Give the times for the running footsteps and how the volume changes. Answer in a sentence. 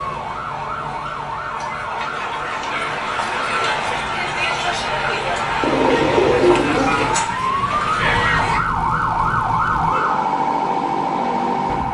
The running footsteps can't be heard in this clip.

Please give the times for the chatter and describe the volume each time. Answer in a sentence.
The chatter can be heard from 0.0 to 8.6 s, getting louder.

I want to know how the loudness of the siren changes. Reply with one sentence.
The loudness of the siren goes up.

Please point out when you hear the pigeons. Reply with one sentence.
The pigeons can be heard from 5.6 to 7.2 s.